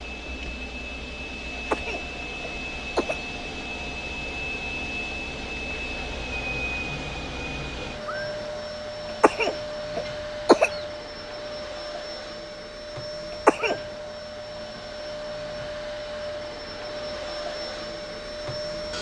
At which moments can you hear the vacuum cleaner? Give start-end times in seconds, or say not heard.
0.0-18.9.